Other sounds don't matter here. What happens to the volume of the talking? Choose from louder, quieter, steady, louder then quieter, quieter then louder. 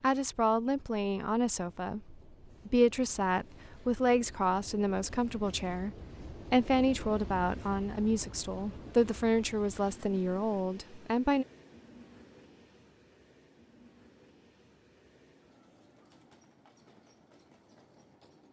steady.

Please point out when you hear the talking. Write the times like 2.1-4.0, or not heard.
0.0-5.9, 6.5-11.4.